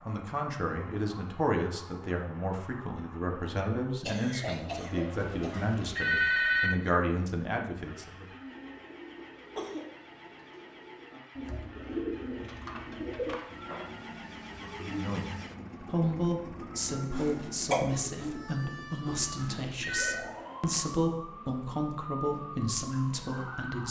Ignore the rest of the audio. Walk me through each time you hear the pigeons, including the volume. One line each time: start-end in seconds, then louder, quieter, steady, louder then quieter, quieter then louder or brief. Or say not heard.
8.4-13.8 louder.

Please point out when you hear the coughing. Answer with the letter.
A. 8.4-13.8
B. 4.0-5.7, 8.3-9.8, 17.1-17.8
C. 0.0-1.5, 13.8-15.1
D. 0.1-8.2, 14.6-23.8
B.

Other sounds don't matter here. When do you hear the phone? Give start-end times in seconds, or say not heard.
5.2-6.7, 19.1-20.2.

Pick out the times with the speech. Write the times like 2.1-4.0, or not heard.
0.1-8.2, 14.6-23.8.